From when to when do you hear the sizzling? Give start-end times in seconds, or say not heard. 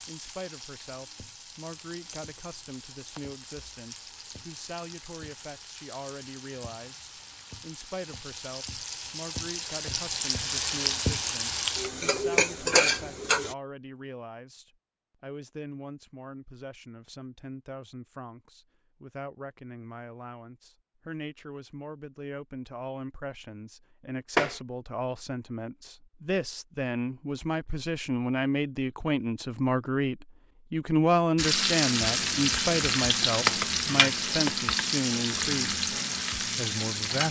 0.0-13.6, 31.4-37.2.